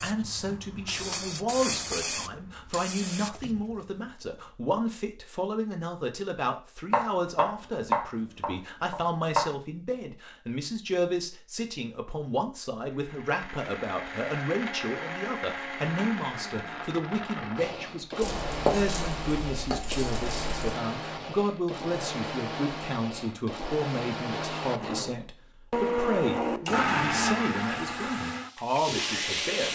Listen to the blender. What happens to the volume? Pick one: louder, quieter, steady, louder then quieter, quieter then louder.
louder.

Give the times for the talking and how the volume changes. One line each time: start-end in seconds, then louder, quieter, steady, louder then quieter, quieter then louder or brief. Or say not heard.
0.0-29.7 steady.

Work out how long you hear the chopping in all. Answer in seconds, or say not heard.
5 s.